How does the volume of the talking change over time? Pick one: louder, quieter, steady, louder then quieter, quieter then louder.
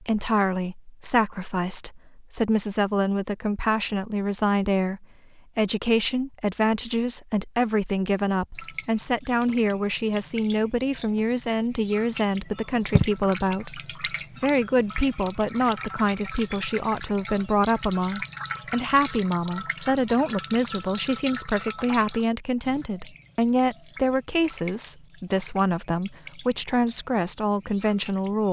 steady.